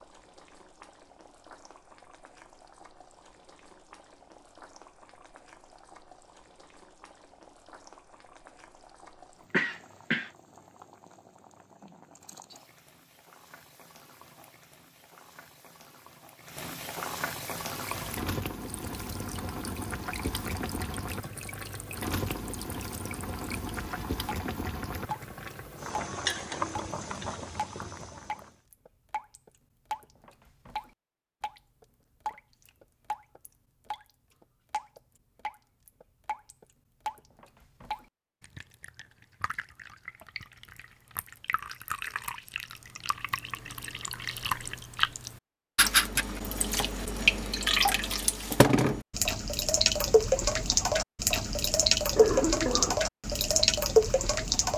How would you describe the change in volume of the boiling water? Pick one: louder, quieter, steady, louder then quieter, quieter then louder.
louder.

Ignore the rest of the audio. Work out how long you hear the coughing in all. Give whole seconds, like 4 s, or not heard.
2 s.